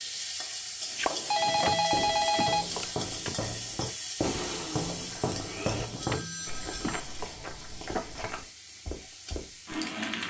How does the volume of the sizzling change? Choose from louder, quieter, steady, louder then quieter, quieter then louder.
quieter.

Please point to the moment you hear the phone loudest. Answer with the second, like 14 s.
2 s.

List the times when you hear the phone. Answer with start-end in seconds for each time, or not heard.
0.9-2.9, 6.0-7.0.